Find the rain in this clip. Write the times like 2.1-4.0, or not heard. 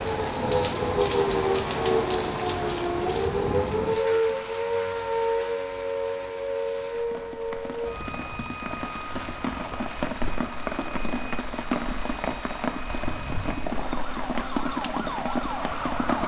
0.0-16.2.